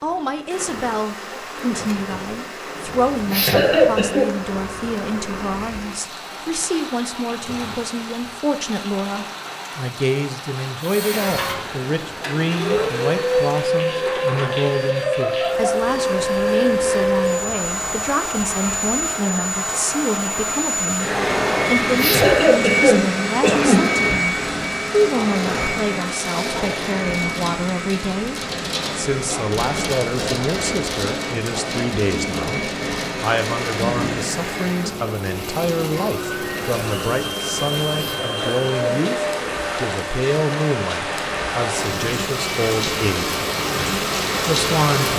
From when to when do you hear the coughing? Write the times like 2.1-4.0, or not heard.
3.2-4.3, 21.9-23.8, 37.9-39.0.